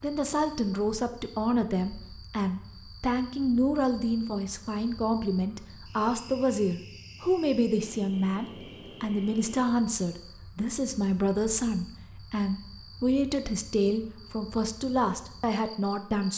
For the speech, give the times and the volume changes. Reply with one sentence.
The speech can be heard from 0.0 to 16.3 s, at a steady volume.